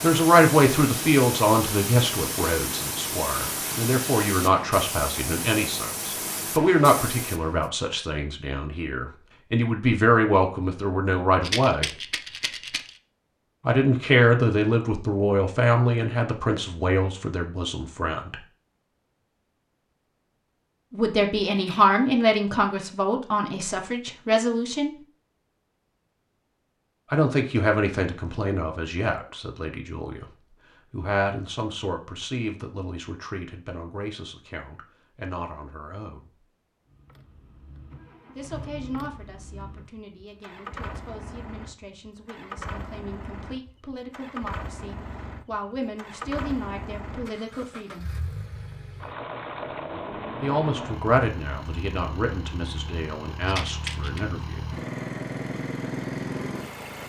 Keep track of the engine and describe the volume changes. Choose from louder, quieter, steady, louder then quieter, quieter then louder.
louder.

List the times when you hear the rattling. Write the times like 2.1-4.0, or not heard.
11.4-12.9, 21.5-21.9, 53.5-54.2.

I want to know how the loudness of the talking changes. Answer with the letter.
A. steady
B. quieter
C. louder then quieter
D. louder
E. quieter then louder
E.